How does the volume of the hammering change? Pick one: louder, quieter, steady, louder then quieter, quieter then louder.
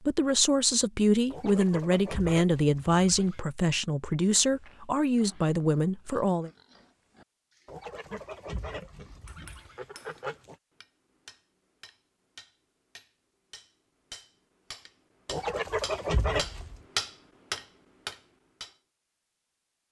louder.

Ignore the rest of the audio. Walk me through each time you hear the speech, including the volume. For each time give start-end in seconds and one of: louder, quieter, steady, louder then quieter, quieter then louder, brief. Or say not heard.
0.0-6.5 steady.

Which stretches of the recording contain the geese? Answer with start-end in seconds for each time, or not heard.
1.3-3.5, 7.7-10.6, 15.2-16.8.